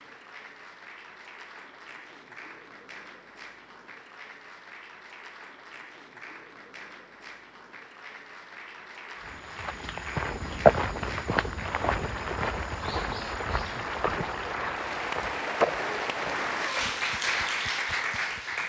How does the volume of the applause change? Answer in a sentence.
The loudness of the applause goes up.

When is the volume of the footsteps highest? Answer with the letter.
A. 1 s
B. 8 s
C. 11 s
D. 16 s
C.